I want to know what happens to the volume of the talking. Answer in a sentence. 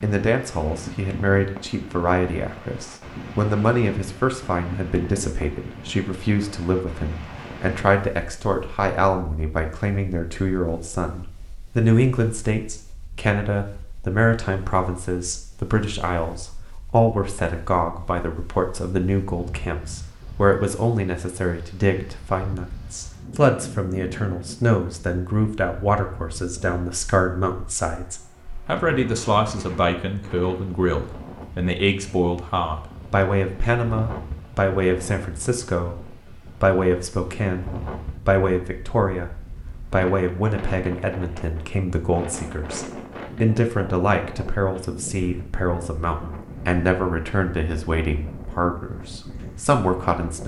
The volume of the talking stays about the same.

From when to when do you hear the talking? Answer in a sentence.
The talking can be heard from 0.0 to 39.3 s and from 39.9 to 50.4 s.